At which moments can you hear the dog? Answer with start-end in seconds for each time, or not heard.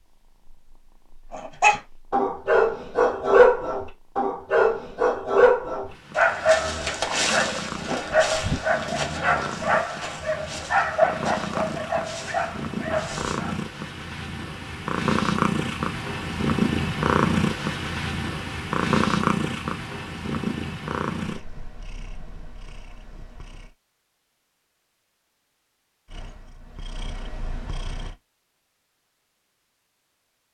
1.3-13.6.